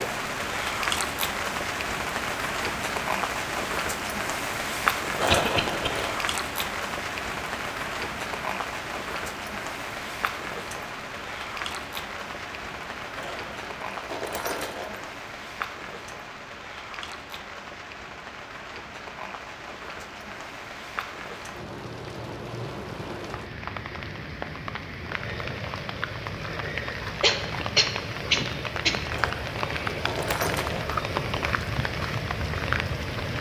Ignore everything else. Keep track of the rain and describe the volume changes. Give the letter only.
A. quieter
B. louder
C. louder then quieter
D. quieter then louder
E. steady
D.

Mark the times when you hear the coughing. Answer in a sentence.
The coughing can be heard from 5.2 to 5.9 s and from 27.2 to 29.0 s.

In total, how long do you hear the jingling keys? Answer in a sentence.
The jingling keys can be heard for 5 seconds in total.